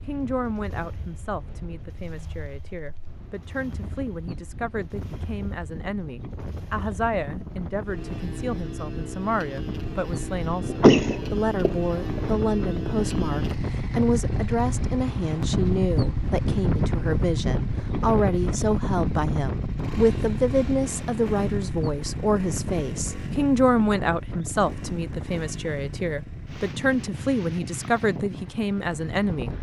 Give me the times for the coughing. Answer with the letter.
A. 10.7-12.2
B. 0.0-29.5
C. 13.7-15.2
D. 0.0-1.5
A.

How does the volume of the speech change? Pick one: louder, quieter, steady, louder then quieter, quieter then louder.
louder.